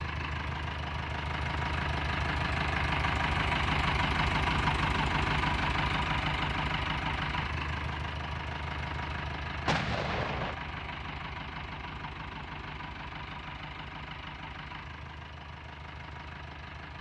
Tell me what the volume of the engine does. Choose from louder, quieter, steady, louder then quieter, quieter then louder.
quieter.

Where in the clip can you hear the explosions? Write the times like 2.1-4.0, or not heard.
9.7-10.6.